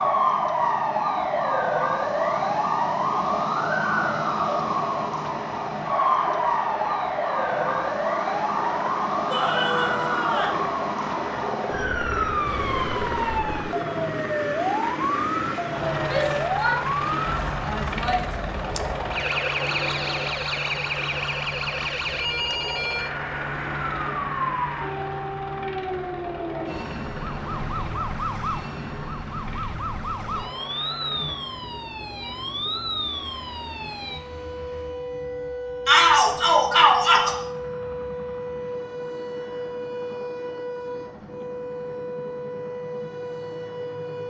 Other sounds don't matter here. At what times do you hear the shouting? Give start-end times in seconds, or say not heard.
9.3-10.6, 16.0-18.4, 35.9-37.4.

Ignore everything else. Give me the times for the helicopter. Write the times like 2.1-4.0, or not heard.
0.0-44.2.